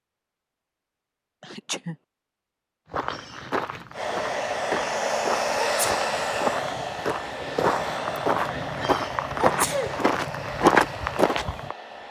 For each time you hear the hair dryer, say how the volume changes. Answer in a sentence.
You can hear the hair dryer from 3.9 to 12.0 s, getting quieter.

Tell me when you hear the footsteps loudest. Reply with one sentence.
The volume of the footsteps peaks at 11 seconds.